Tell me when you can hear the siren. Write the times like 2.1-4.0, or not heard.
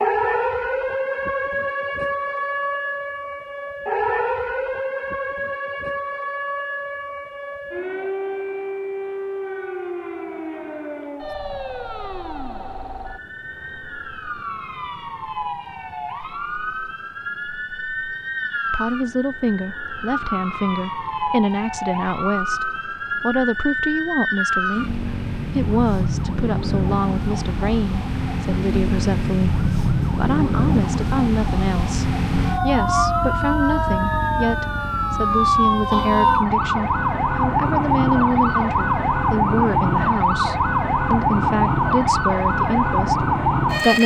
0.0-44.0.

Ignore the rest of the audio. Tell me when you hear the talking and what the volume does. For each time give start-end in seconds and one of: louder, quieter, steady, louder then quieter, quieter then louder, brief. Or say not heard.
18.7-44.0 steady.